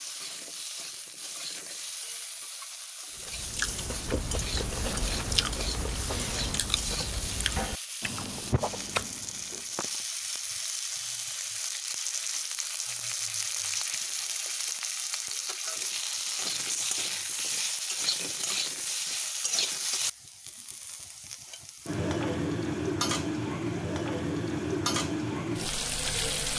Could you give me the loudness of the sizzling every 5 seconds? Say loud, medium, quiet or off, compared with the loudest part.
medium, medium, loud, loud, loud, loud.